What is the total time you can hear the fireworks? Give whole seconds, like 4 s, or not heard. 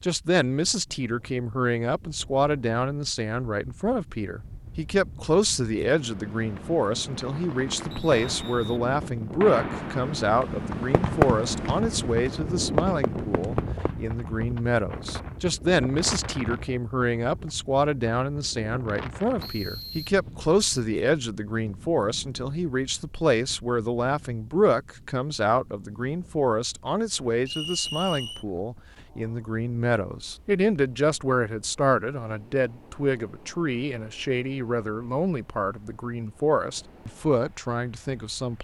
8 s.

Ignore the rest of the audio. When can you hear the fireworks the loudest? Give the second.
11 s.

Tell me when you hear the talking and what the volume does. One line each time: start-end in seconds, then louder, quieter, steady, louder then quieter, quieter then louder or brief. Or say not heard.
0.0-38.5 steady.